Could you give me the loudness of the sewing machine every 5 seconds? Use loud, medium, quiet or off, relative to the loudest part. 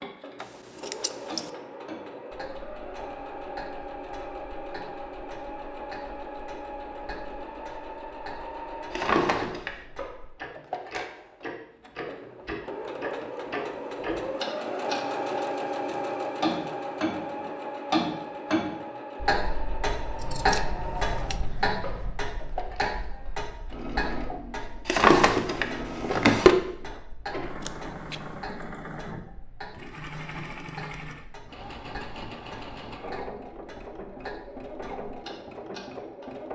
medium, medium, loud, loud, medium, medium, medium, medium.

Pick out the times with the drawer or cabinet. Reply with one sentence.
The drawer or cabinet can be heard from 8.9 to 9.7 s and from 24.9 to 26.6 s.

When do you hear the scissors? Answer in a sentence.
The scissors can be heard from 0.3 to 1.5 s, from 20.1 to 22.2 s and from 27.6 to 28.4 s.